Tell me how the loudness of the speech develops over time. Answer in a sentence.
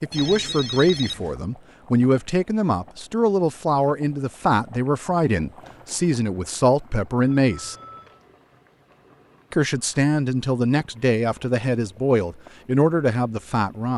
The volume of the speech stays about the same.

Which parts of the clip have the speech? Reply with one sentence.
You can hear the speech from 0.0 to 7.8 s and from 9.5 to 13.9 s.